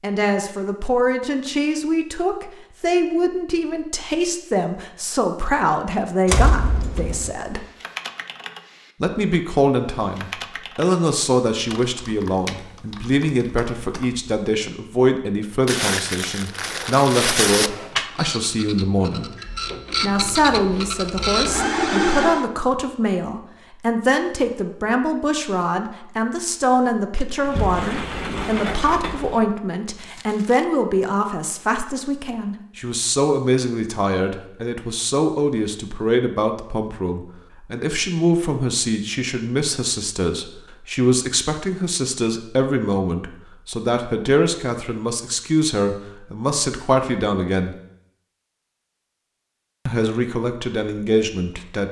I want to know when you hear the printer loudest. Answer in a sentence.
The loudest moment of the printer is at 22 seconds.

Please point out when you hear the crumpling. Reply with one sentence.
You can hear the crumpling from 15.7 to 17.7 s and from 29.9 to 30.6 s.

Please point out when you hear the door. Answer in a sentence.
You can hear the door from 6.2 to 7.3 s and from 27.4 to 29.5 s.